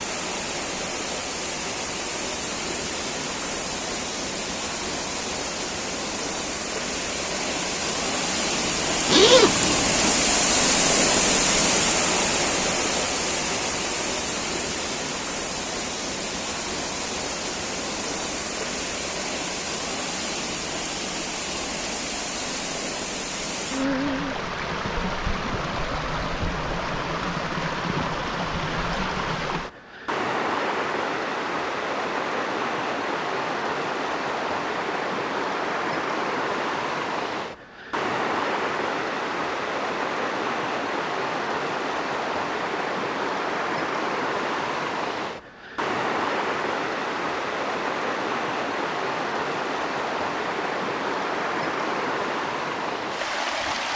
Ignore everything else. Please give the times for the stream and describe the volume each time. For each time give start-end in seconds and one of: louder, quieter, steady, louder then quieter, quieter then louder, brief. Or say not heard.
0.0-53.9 steady.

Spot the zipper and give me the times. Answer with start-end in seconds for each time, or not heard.
9.1-10.2.